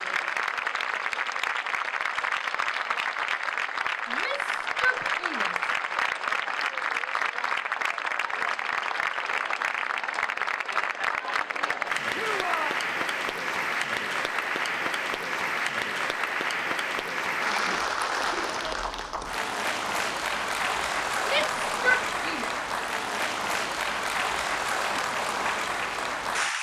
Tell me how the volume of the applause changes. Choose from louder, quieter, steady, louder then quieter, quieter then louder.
steady.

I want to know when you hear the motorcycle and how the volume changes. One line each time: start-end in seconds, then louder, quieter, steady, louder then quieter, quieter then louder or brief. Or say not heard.
not heard.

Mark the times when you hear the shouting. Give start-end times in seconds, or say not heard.
4.0-5.7, 12.1-12.8, 21.2-22.5.